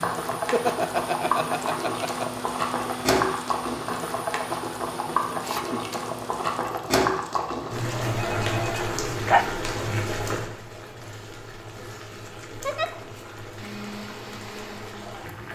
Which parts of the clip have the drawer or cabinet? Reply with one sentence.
The drawer or cabinet can't be heard in this clip.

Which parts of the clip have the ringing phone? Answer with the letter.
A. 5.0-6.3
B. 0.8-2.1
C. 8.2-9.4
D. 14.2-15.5
C.